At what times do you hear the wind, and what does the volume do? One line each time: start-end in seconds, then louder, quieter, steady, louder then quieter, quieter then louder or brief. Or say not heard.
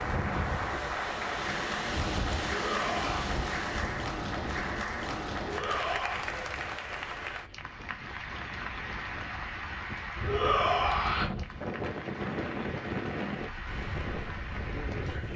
0.0-15.3 quieter then louder.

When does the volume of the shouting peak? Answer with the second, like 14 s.
11 s.